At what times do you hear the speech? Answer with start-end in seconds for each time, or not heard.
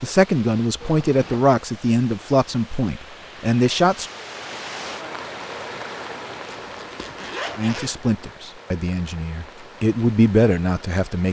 0.0-4.1, 7.5-11.2.